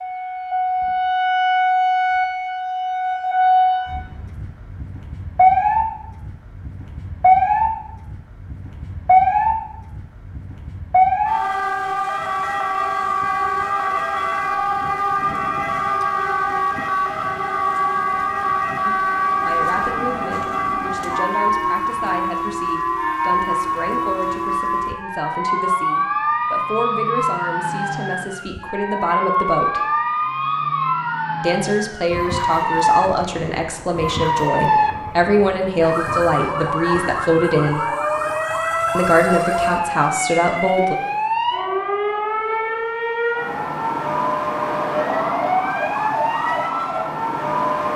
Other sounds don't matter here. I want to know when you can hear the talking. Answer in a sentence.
You can hear the talking from 18.9 to 29.8 s, from 31.4 to 37.8 s and from 39.0 to 41.0 s.